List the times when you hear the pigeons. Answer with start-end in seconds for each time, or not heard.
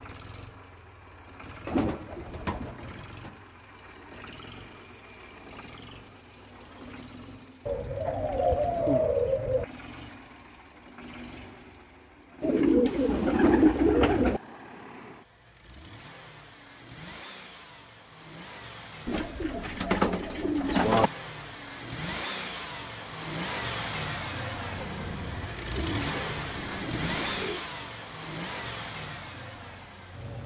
1.6-3.3, 7.7-9.7, 12.4-14.4, 19.1-21.1, 24.7-27.6.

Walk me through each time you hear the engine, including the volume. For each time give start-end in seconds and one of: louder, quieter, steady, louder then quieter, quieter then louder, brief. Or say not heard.
0.0-30.4 louder.